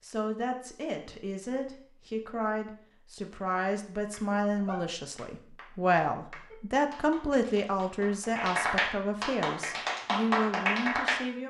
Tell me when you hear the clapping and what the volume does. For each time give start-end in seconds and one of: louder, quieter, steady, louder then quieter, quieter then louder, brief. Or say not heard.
3.9-11.2 quieter then louder.